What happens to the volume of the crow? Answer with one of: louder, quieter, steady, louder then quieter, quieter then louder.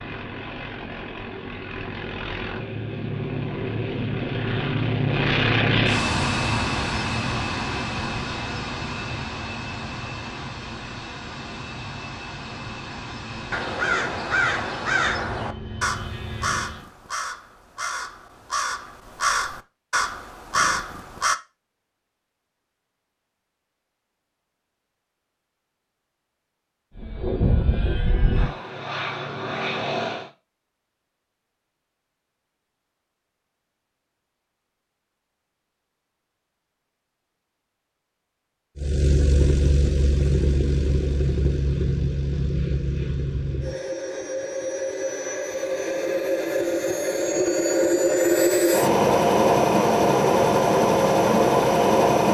quieter then louder.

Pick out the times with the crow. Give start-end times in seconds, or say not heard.
13.5-21.4.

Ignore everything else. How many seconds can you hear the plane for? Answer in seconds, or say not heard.
34 s.